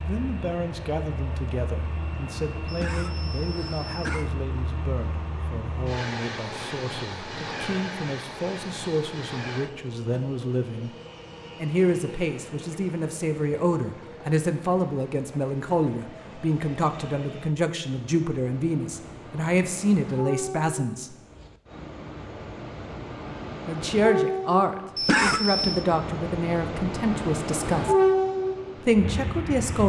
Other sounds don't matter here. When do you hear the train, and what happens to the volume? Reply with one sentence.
You can hear the train from 0.0 to 29.8 s, getting quieter then louder.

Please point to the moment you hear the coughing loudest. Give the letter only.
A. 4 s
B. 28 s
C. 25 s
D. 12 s
C.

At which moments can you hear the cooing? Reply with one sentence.
You can't hear the cooing here.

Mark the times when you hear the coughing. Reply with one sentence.
You can hear the coughing from 2.6 to 4.3 s and from 24.9 to 25.9 s.